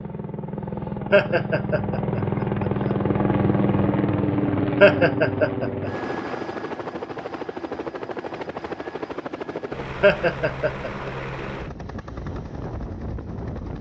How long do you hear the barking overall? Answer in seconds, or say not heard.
not heard.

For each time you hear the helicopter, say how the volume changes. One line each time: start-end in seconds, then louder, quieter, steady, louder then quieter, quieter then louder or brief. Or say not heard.
0.0-13.7 quieter.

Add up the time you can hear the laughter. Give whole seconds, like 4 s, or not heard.
3 s.